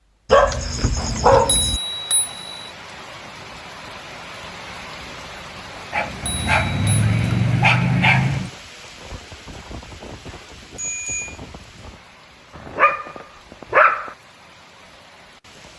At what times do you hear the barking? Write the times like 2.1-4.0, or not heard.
0.3-1.8, 5.9-8.5, 12.6-14.2.